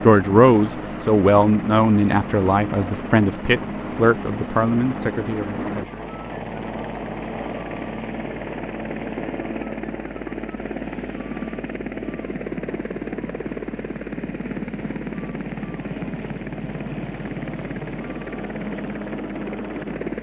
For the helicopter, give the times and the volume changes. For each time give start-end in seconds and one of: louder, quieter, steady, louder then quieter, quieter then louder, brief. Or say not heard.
0.0-20.1 steady.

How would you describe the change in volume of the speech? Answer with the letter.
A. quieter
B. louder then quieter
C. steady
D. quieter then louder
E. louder
A.